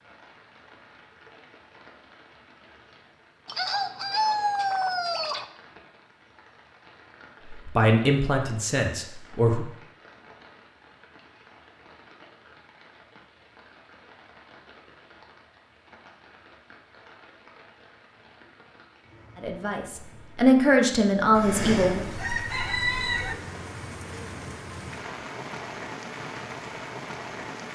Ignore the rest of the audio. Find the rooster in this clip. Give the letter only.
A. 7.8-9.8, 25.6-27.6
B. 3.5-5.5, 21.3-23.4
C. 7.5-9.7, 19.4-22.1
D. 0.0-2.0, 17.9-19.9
B.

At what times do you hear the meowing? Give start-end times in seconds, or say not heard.
not heard.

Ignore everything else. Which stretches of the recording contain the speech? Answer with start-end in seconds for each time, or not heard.
7.5-9.7, 19.4-22.1.